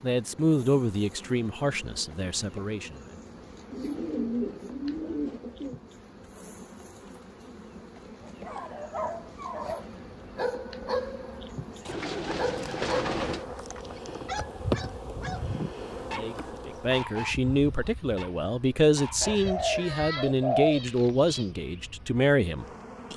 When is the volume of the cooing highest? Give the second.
21 s.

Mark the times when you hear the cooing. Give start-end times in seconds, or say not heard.
3.7-5.8, 11.8-13.4, 19.2-21.4.